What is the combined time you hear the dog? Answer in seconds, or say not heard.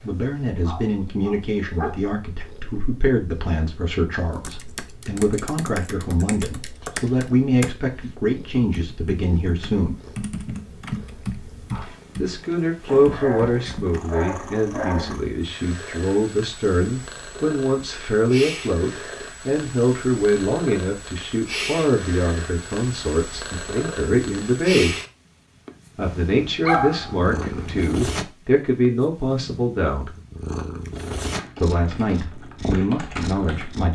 6 s.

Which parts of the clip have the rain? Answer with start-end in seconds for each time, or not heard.
not heard.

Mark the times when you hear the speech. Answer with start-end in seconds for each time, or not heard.
0.0-10.0, 12.2-24.9, 25.9-30.1, 31.6-33.9.